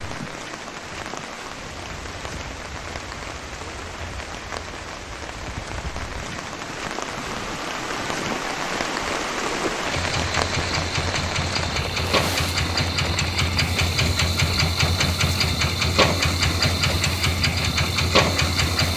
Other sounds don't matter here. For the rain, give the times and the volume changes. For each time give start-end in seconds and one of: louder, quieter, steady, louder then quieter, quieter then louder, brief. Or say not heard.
0.0-18.9 louder then quieter.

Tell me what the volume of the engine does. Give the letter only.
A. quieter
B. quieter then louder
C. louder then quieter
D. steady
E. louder
E.